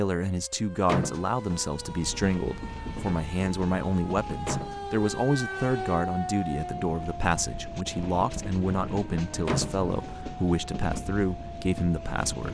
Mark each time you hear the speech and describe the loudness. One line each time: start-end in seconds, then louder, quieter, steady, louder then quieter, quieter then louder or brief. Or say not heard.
0.0-12.5 steady.